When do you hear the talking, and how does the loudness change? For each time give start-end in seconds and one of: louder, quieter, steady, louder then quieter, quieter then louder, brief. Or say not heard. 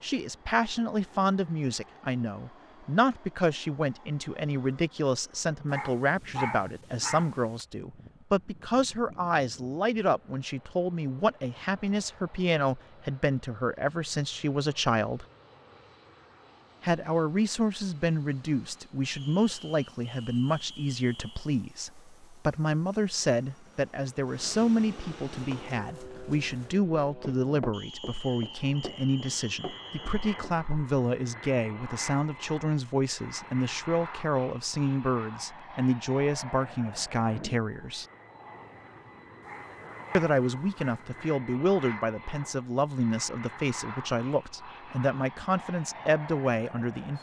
0.0-15.2 steady
16.8-38.0 steady
40.1-47.1 steady.